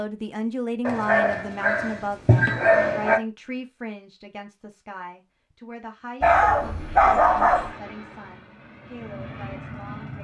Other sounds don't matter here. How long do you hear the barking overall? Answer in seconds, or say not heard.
4 s.